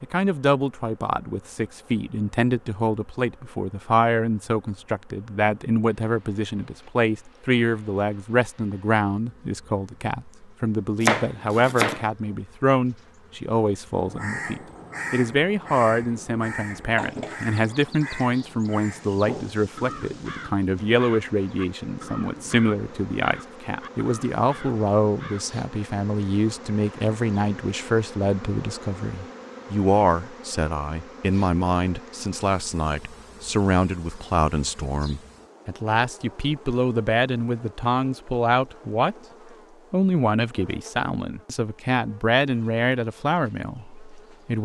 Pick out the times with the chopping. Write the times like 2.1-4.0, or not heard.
11.0-12.1.